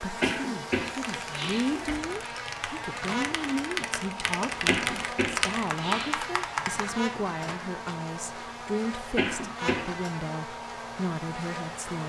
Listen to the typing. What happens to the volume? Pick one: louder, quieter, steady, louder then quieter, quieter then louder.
louder.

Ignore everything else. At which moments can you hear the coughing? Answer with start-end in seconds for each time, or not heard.
0.2-2.2, 4.7-6.2, 9.2-9.8.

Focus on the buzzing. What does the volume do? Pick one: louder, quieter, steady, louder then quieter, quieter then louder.
steady.